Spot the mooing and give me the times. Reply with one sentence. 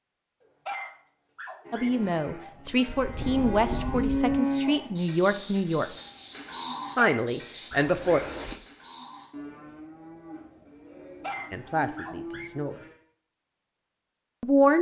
You can hear the mooing from 1.6 to 12.9 s.